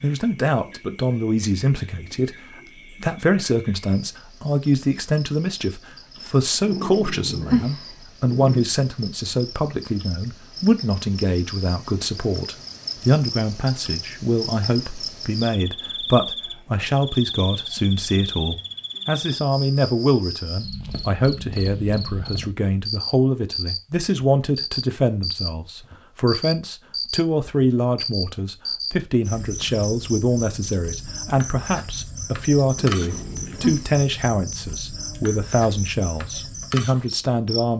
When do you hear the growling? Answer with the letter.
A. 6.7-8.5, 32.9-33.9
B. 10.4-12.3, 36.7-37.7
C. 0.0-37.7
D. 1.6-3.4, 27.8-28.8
A.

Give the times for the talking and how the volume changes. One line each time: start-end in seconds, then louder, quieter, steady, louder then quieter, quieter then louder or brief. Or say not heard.
0.0-37.7 steady.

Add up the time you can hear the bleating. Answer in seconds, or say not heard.
not heard.